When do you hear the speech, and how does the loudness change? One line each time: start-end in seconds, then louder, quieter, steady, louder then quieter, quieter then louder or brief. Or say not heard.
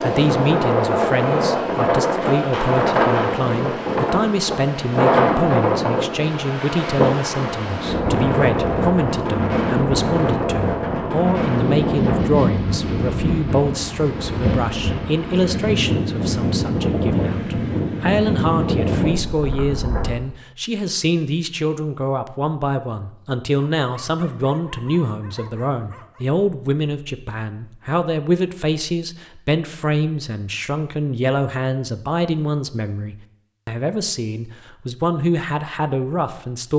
0.0-36.7 steady.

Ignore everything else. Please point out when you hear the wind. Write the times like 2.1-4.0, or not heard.
0.0-20.1.